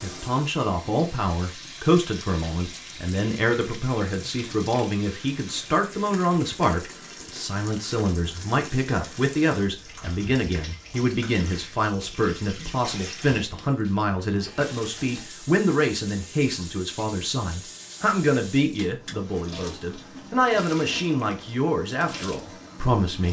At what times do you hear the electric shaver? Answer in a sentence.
The electric shaver can't be heard in this clip.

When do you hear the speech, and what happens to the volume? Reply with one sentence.
You can hear the speech from 0.0 to 23.2 s, at a steady volume.